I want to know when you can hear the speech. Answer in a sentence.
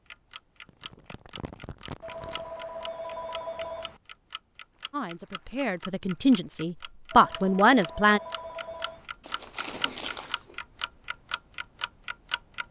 You can hear the speech from 4.9 to 8.2 s.